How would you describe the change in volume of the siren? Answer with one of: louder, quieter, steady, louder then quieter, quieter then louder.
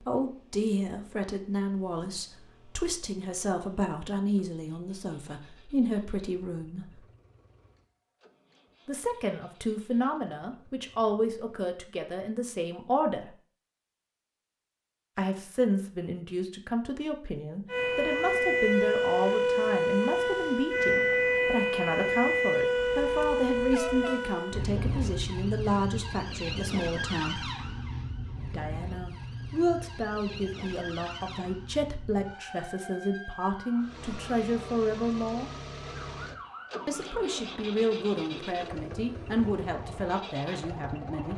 quieter.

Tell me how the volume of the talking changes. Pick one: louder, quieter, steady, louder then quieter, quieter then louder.
steady.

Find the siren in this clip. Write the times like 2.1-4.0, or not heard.
17.7-41.3.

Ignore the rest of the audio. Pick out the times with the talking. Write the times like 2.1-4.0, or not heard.
0.1-7.0, 8.8-13.3, 15.2-27.4, 28.5-35.5, 36.9-41.3.